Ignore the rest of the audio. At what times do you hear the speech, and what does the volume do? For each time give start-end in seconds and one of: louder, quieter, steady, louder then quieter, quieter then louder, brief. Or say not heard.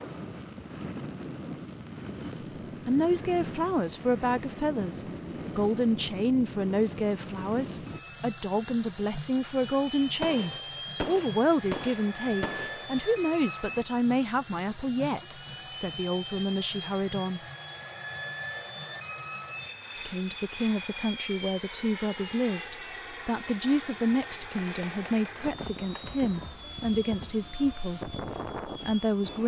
2.2-17.4 steady
19.9-29.4 steady.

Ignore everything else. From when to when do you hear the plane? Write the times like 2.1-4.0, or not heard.
0.0-29.4.